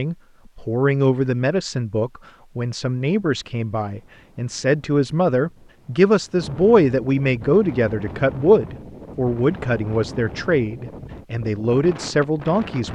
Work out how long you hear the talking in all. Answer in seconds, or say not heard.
13 s.